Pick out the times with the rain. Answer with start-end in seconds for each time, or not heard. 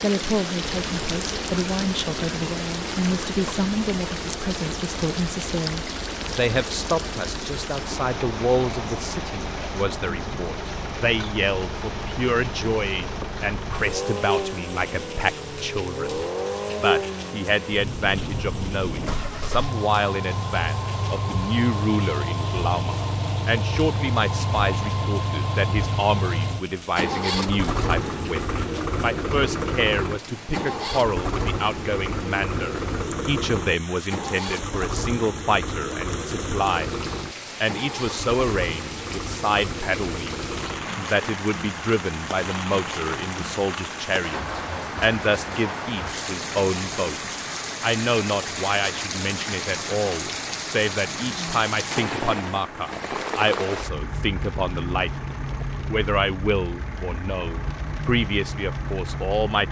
0.0-59.6.